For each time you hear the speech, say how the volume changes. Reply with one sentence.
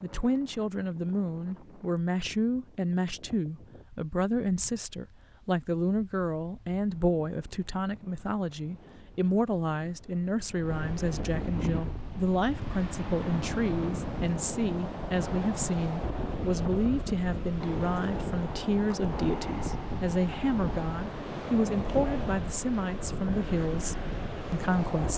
You can hear the speech from 0.0 to 25.1 s, at a steady volume.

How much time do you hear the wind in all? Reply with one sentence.
You can hear the wind for 25 seconds altogether.